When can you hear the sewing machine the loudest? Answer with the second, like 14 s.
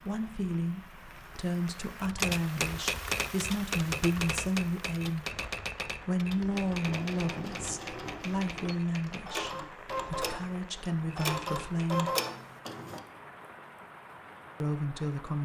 12 s.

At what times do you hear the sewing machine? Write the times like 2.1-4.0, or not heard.
6.5-13.0.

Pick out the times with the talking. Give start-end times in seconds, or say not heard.
0.0-12.2, 14.6-15.3.